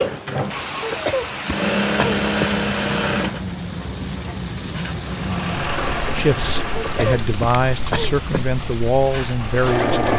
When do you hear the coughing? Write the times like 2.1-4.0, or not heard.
0.8-2.5, 6.8-8.7.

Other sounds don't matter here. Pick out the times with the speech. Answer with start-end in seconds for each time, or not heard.
6.1-10.1.